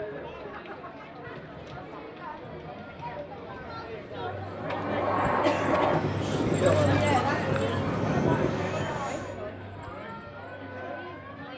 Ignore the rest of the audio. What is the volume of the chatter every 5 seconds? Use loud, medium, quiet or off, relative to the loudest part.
medium, loud, medium.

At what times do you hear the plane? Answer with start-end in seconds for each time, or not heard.
4.6-9.3.